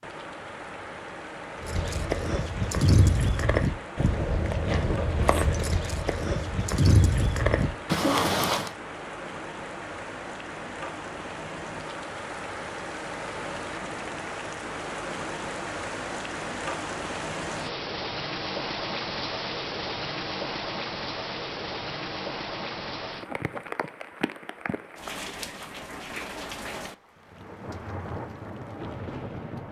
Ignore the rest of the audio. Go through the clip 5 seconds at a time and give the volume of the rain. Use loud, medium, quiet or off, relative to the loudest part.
medium, medium, loud, loud, loud, medium.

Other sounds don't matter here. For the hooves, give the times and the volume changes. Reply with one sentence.
The hooves can be heard from 1.6 to 8.7 s, at a steady volume.